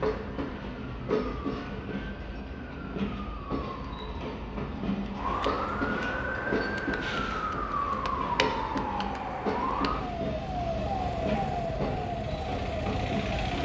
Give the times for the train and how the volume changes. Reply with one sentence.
The train can be heard from 0.0 to 13.6 s, at a steady volume.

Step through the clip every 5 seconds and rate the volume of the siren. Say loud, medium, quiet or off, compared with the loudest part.
quiet, loud, loud.